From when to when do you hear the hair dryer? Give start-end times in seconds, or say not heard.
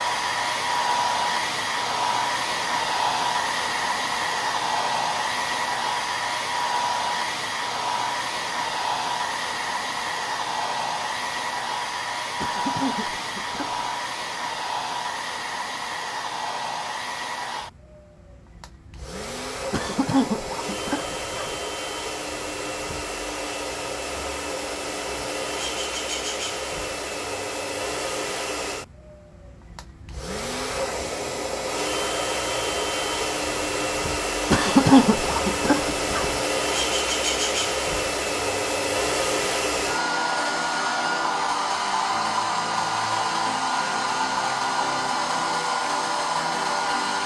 0.0-47.2.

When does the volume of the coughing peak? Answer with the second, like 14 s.
35 s.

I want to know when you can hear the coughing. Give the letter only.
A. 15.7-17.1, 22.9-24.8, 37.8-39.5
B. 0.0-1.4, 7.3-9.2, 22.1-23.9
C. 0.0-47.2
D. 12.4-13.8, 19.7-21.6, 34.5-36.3
D.